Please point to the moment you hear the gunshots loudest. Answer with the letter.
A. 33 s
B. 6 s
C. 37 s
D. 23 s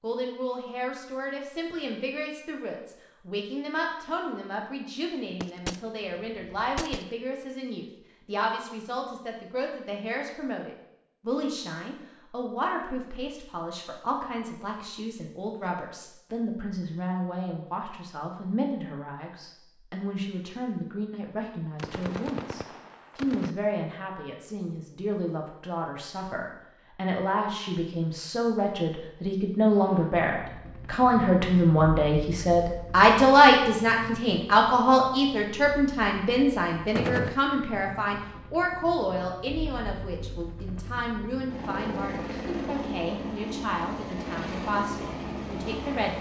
C.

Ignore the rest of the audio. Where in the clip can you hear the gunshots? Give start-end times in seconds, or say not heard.
5.4-7.0, 21.8-23.6, 37.0-37.4.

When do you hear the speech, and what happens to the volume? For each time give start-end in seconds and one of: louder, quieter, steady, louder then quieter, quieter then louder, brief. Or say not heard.
0.0-46.1 louder then quieter.